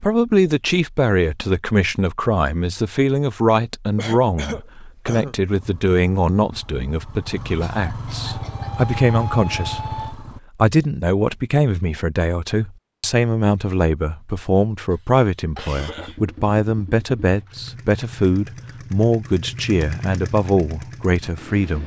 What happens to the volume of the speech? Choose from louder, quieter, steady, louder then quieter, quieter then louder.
steady.